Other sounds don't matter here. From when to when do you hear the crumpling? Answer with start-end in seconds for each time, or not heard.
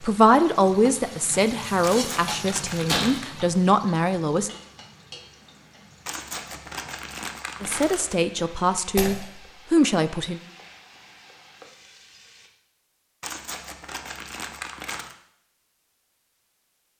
1.8-3.3, 6.0-8.2, 13.2-15.2.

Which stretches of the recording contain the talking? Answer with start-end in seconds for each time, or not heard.
0.0-4.5, 7.6-10.4.